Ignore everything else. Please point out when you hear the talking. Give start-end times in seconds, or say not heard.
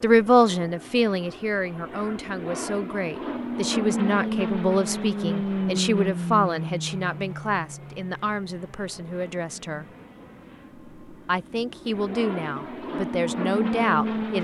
0.0-9.8, 11.1-14.3.